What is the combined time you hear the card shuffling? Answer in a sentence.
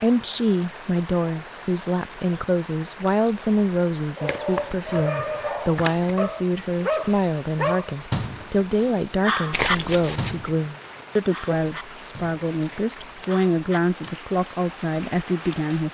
You can hear the card shuffling for 3 seconds altogether.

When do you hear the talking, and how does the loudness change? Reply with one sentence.
You can hear the talking from 0.0 to 15.9 s, at a steady volume.